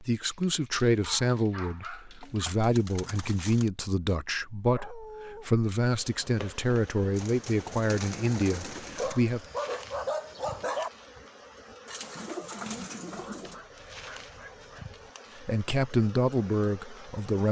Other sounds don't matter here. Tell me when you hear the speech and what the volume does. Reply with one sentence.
The speech can be heard from 0.0 to 9.4 s, at a steady volume; and briefly from 15.3 to 17.4 s.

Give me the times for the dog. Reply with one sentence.
The dog can be heard from 0.2 to 2.5 s, from 4.7 to 5.5 s, from 8.9 to 10.9 s and from 13.1 to 15.1 s.